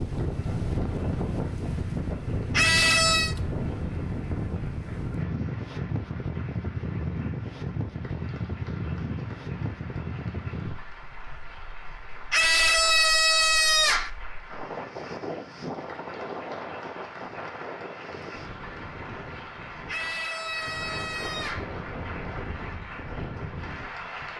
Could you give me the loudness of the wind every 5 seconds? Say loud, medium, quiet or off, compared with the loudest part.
loud, loud, medium, medium, medium.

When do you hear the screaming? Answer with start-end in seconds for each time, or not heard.
2.5-3.4, 12.3-14.1, 19.9-21.7.